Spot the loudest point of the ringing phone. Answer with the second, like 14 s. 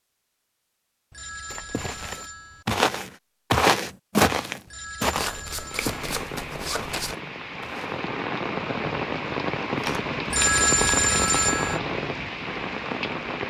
11 s.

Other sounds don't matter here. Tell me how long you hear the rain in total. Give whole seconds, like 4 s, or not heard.
8 s.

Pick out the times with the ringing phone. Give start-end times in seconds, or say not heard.
1.1-2.6, 4.7-6.0, 10.3-11.8.